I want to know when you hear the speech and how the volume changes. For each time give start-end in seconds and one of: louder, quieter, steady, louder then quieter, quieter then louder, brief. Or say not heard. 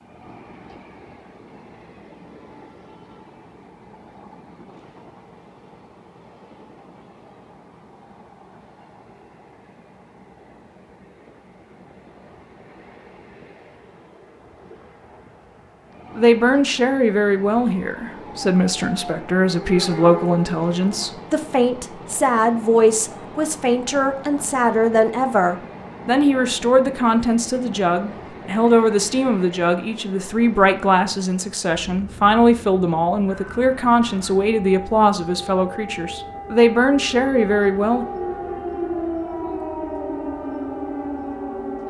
16.1-38.0 steady.